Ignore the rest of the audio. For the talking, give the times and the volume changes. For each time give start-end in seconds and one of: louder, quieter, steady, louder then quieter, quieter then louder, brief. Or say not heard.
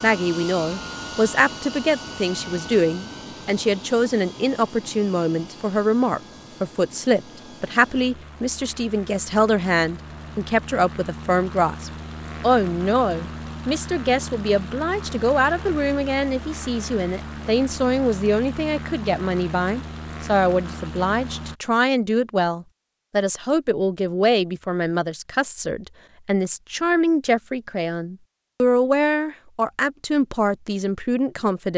0.0-31.7 steady.